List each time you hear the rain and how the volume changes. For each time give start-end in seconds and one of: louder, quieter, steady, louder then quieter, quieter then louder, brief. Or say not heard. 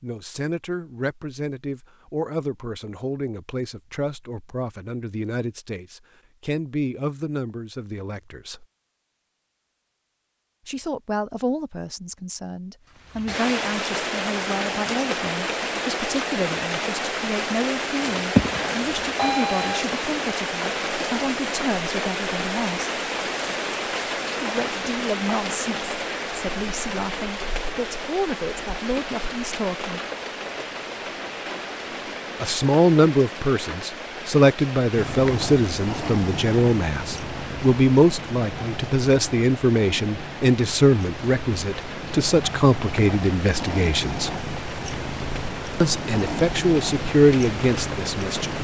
13.0-48.5 quieter.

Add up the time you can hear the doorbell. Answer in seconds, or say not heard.
2 s.